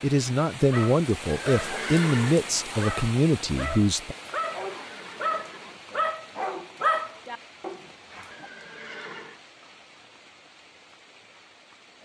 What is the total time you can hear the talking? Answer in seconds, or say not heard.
4 s.